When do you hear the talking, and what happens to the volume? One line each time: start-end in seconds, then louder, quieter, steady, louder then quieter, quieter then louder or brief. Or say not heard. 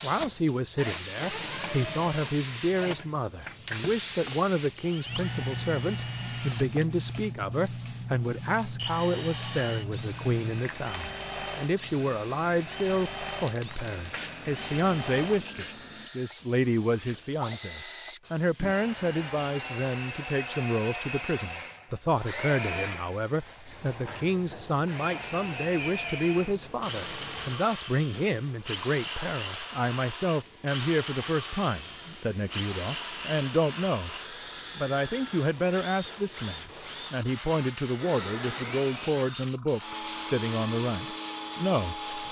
0.0-34.1 steady
34.8-42.0 steady.